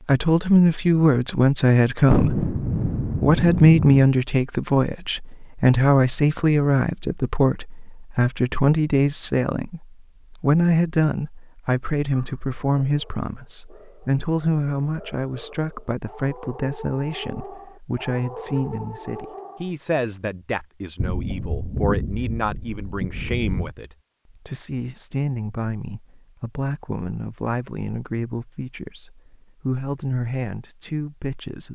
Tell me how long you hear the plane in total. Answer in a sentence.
The plane can't be heard in this clip.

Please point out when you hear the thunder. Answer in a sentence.
You can hear the thunder from 2.1 to 4.0 s and from 20.9 to 23.8 s.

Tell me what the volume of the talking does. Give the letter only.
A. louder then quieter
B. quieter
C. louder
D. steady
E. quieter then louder
B.